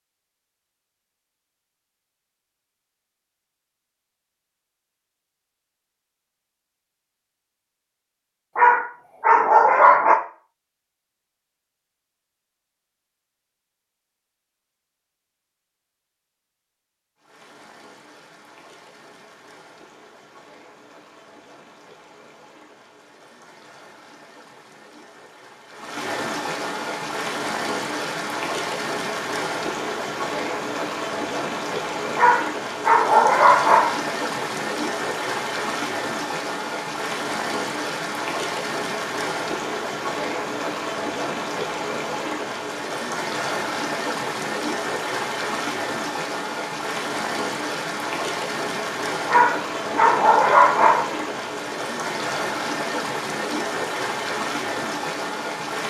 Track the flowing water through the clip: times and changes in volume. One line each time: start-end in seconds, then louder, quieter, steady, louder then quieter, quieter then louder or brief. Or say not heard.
17.1-55.8 louder.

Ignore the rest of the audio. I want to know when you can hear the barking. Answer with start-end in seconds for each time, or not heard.
8.6-10.2, 32.1-34.0, 49.2-51.1.